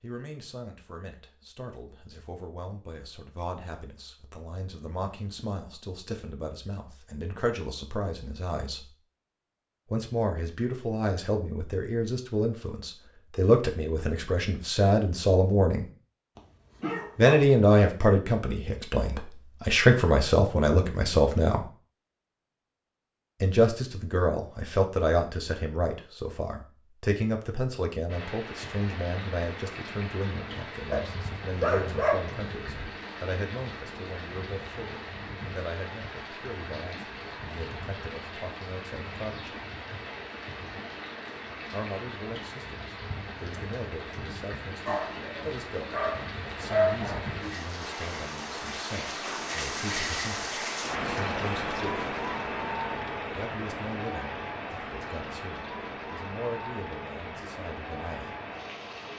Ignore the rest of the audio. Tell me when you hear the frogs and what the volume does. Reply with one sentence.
The frogs can't be heard in this clip.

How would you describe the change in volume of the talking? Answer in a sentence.
The loudness of the talking goes up, then down.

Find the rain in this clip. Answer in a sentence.
You can hear the rain from 28.1 to 59.1 s.